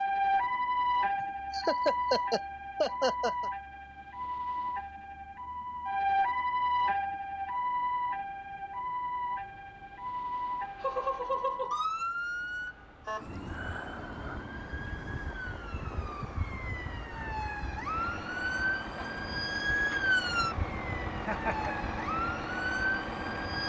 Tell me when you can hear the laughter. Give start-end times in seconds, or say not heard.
1.5-3.5, 10.8-11.8, 21.2-21.8.